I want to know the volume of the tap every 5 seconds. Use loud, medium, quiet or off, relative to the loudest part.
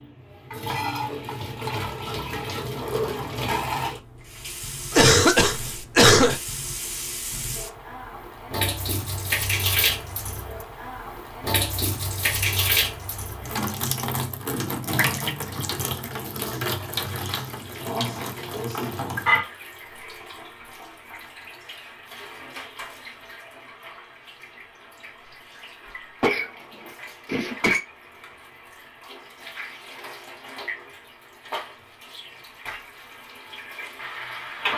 loud, loud, loud, loud, quiet, quiet, medium.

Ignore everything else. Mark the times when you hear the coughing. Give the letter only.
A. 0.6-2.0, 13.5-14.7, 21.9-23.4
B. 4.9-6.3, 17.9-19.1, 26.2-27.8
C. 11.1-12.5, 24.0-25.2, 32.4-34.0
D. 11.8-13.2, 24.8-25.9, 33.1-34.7
B.